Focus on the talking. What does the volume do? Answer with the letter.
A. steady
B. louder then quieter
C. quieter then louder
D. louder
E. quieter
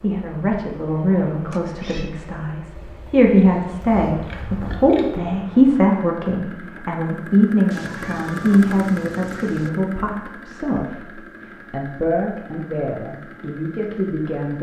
B.